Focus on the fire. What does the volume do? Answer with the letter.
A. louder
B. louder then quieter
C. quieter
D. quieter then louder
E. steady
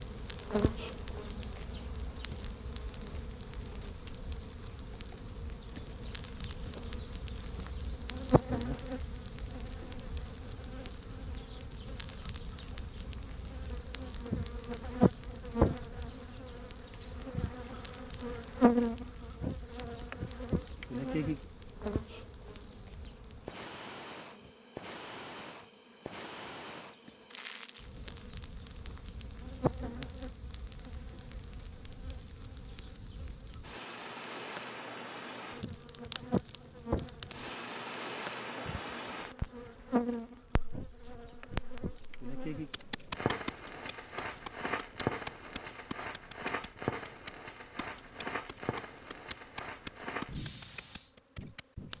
A.